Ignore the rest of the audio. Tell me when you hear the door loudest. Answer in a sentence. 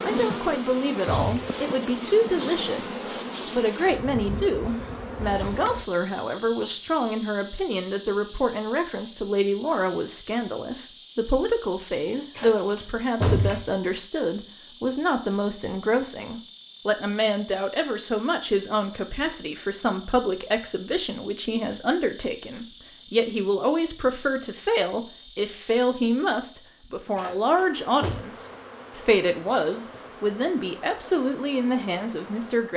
The loudest moment of the door is at 13 seconds.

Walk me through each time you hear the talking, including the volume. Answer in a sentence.
The talking can be heard from 0.0 to 32.7 s, at a steady volume.